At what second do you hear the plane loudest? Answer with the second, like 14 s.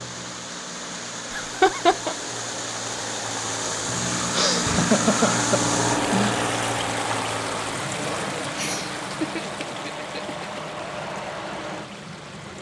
6 s.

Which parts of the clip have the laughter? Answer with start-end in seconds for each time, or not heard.
1.3-2.1, 4.3-6.3, 8.6-10.6.